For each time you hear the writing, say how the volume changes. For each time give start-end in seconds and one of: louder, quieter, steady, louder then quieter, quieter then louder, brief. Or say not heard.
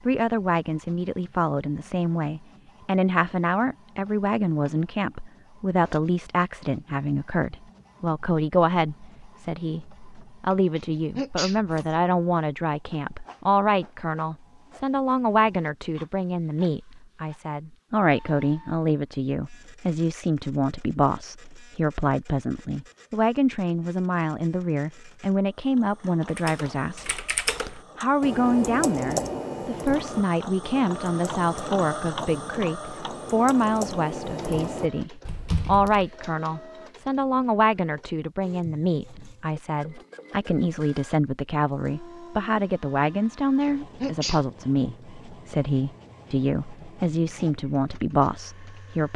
not heard.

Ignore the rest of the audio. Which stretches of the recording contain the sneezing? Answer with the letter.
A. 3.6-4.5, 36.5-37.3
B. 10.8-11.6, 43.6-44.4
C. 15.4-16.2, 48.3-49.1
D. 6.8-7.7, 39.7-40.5
B.